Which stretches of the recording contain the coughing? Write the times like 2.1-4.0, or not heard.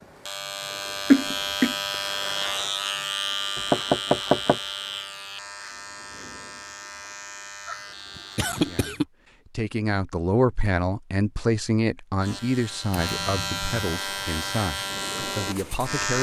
1.1-1.8, 7.7-9.1, 12.9-13.8.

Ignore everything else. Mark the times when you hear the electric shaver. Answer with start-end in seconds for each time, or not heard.
0.0-8.9, 12.2-16.1.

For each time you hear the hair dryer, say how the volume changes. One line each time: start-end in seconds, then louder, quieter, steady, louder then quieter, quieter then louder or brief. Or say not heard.
not heard.